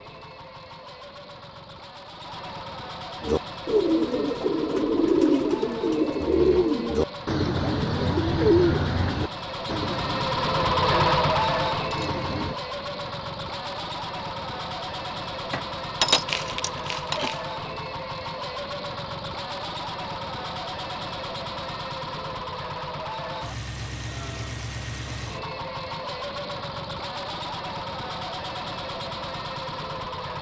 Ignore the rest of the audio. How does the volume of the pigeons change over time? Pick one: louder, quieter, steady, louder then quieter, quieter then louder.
quieter.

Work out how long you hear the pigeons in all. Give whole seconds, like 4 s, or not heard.
9 s.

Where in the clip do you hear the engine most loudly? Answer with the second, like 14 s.
11 s.